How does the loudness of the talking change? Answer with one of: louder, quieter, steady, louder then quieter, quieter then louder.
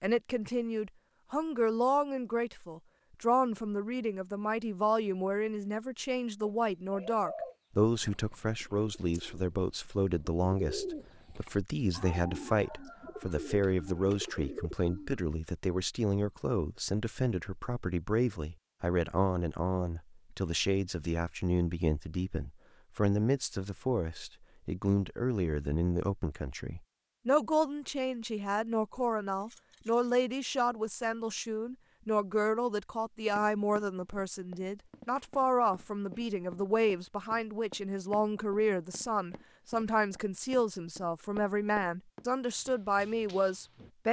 steady.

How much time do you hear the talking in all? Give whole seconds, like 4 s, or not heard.
44 s.